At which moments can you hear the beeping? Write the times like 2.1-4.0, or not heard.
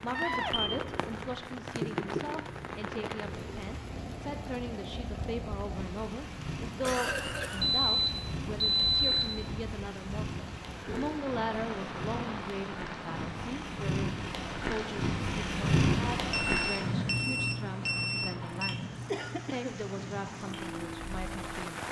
0.1-0.7, 7.6-9.4, 16.3-18.8.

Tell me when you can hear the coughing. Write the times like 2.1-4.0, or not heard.
6.8-7.7.